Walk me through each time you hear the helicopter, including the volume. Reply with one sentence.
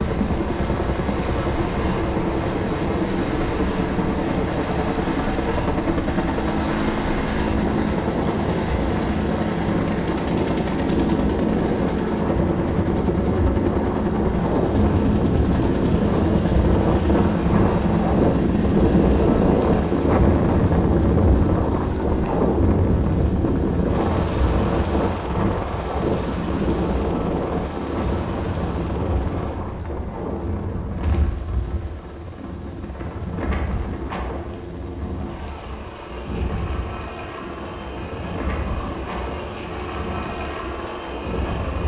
The helicopter can be heard from 0.0 to 41.8 s, getting quieter.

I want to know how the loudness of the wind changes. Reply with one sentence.
The loudness of the wind goes up, then down.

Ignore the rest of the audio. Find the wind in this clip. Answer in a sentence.
The wind can be heard from 0.0 to 41.8 s.